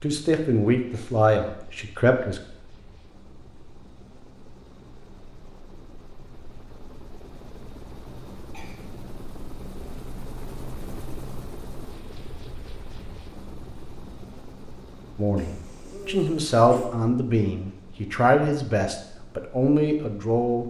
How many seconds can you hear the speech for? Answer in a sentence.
The speech can be heard for 8 seconds in total.